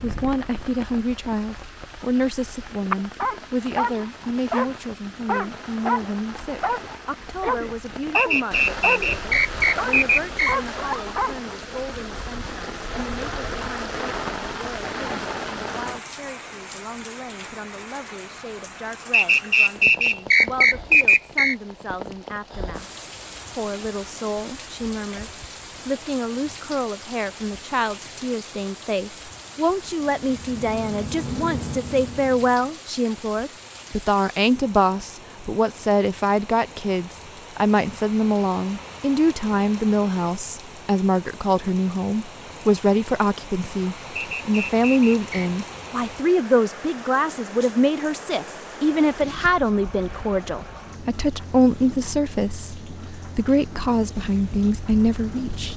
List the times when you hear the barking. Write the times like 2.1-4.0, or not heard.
2.9-11.3.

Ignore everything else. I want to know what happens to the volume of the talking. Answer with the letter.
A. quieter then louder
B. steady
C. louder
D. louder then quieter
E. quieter
A.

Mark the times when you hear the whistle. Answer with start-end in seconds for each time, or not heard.
8.2-10.6, 19.1-21.6, 44.1-45.5.